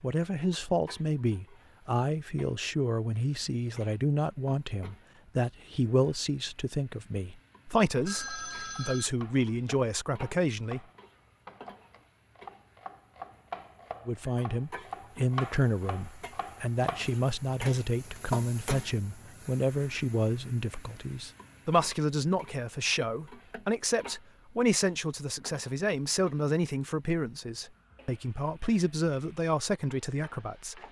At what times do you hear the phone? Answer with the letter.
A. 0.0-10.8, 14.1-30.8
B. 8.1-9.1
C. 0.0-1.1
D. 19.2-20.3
B.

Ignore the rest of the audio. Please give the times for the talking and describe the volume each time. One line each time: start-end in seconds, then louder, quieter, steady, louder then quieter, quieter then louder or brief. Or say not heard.
0.0-10.8 steady
14.1-30.8 steady.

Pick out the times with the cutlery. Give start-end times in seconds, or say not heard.
not heard.